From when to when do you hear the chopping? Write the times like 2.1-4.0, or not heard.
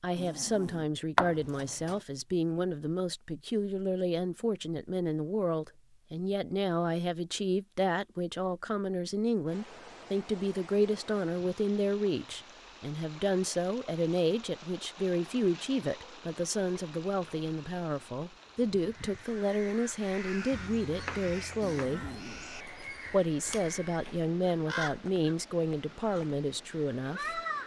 1.1-2.0, 20.5-22.2.